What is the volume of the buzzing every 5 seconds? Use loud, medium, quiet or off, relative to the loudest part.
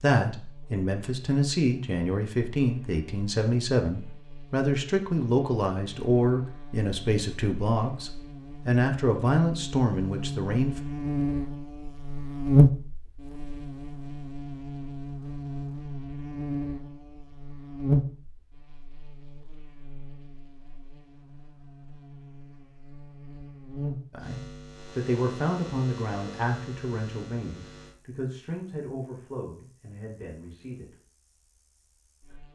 quiet, quiet, loud, medium, quiet, quiet, quiet.